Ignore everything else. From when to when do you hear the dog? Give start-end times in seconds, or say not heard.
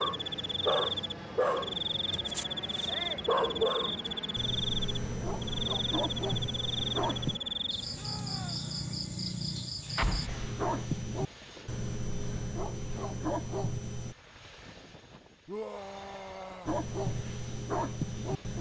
0.0-7.4, 10.2-14.2, 16.6-18.5.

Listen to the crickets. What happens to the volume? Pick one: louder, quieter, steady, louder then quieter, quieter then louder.
steady.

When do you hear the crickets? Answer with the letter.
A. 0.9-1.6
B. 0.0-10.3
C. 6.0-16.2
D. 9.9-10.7
B.